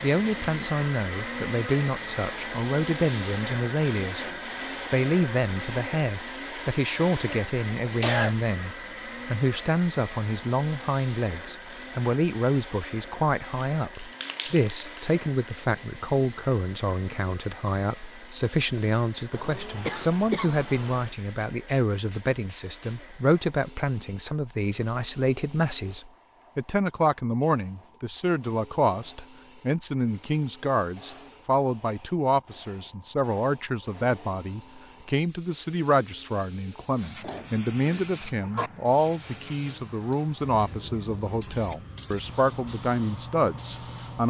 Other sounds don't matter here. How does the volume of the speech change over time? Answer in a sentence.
The volume of the speech stays about the same.